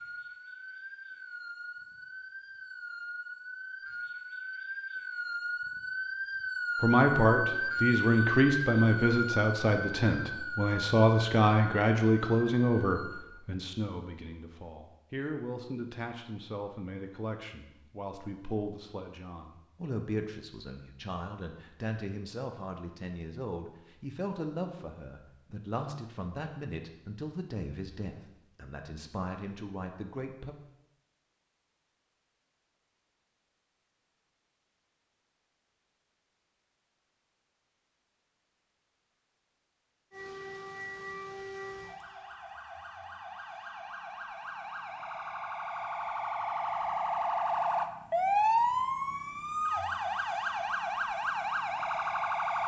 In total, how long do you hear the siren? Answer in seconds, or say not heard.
26 s.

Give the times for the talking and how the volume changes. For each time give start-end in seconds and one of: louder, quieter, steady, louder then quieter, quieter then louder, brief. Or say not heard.
6.8-30.6 quieter.